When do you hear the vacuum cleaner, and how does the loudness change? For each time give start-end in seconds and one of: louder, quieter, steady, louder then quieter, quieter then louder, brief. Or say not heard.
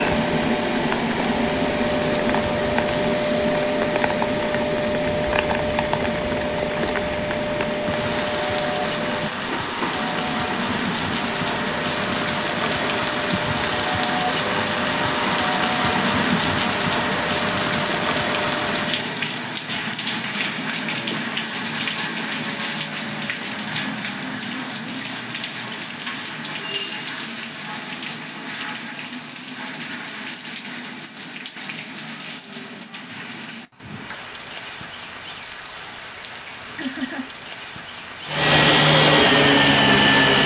0.0-19.1 quieter
38.2-40.4 brief.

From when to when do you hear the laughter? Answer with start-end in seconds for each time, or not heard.
36.8-37.3.